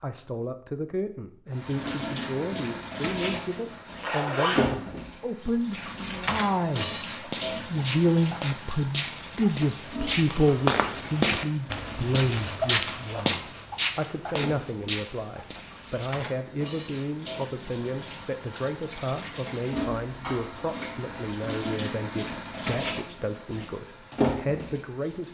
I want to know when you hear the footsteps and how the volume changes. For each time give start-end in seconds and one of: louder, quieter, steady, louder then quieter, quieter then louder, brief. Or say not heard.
6.5-16.1 louder then quieter.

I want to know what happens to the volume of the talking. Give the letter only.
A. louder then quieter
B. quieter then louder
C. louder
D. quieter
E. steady
A.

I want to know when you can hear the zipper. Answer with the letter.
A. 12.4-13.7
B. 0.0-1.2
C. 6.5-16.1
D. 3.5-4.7
D.